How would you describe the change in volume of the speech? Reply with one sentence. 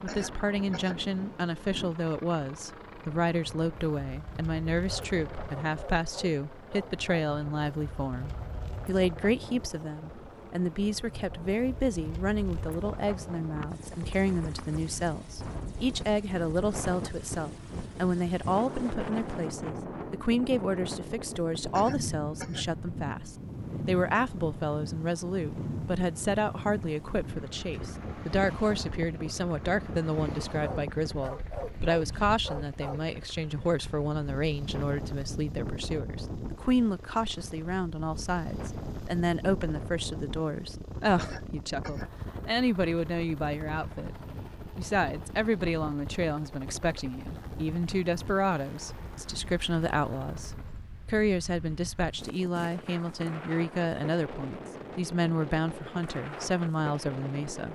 The loudness of the speech stays about the same.